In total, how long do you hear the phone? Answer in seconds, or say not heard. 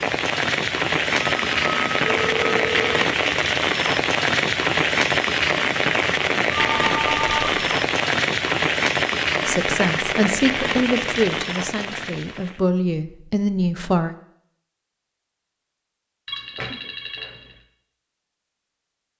4 s.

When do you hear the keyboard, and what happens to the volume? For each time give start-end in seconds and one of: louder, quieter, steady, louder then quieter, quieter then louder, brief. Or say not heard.
not heard.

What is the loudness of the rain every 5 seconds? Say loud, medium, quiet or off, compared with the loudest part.
loud, loud, medium, off.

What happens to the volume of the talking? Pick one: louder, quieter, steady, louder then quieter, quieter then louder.
quieter then louder.